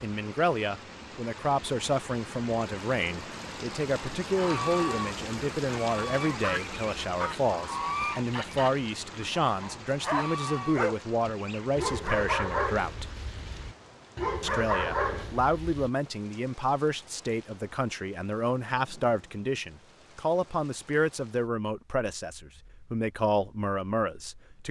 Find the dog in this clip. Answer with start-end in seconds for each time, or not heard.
10.1-15.9.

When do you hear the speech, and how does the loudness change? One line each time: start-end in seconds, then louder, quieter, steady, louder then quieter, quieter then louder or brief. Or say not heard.
0.0-13.1 steady
14.4-24.6 steady.